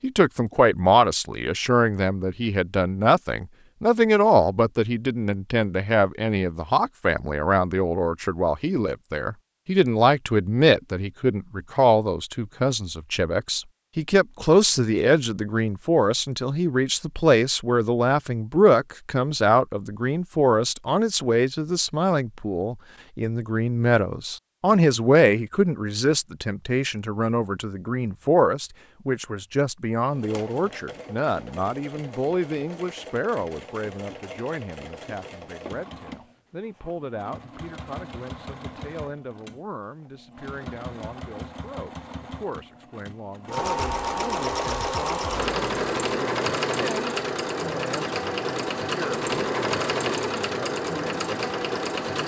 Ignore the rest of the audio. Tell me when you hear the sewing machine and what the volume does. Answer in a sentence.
The sewing machine can be heard from 30.1 to 52.2 s, getting louder.